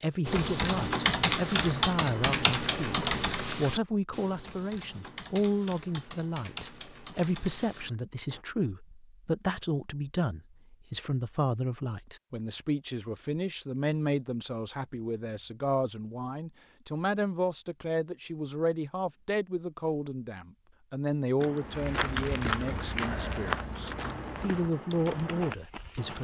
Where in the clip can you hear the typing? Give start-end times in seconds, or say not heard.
0.2-8.4, 21.4-26.1.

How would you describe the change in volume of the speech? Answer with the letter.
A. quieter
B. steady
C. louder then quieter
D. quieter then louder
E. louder
B.